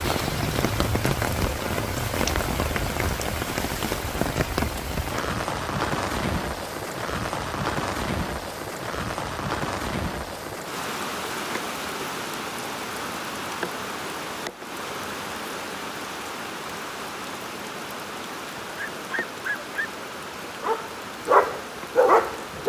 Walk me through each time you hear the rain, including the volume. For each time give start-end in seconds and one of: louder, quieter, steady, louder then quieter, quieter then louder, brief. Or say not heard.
0.0-22.6 quieter.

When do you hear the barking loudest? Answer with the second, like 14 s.
22 s.